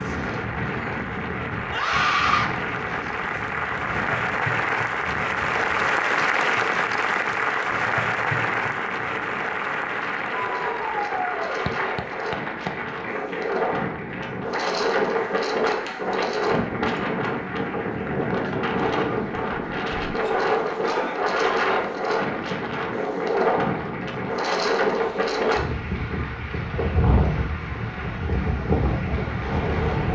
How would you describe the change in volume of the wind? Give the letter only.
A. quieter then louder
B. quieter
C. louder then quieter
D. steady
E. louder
E.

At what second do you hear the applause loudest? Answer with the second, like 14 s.
6 s.